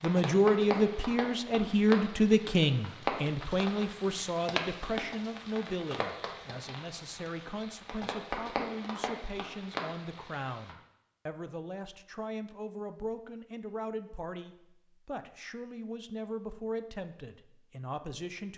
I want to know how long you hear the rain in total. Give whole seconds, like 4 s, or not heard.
11 s.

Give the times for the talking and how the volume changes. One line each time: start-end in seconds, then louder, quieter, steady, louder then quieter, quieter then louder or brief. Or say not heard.
0.0-18.5 quieter.